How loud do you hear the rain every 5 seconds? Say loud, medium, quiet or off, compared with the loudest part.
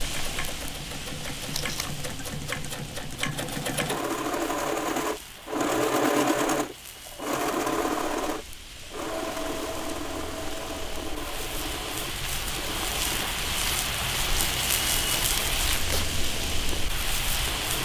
medium, quiet, loud, loud.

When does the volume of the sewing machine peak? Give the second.
6 s.